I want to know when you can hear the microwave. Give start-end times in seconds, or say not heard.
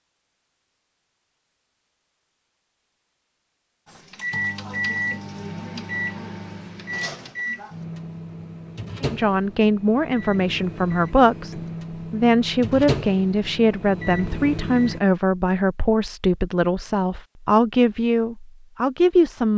3.9-15.0.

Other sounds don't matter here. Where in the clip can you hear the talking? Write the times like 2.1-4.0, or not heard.
9.0-19.5.